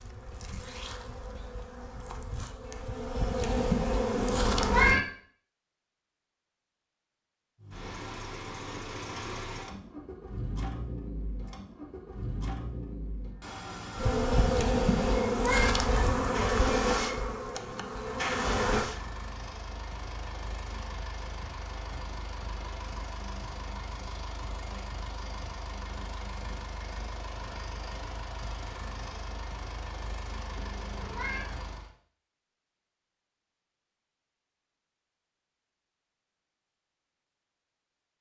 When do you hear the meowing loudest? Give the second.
5 s.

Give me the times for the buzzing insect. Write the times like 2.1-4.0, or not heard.
0.0-5.0, 13.9-18.9.